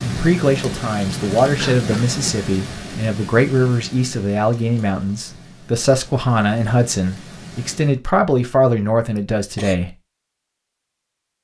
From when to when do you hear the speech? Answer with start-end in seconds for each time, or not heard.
0.0-9.9.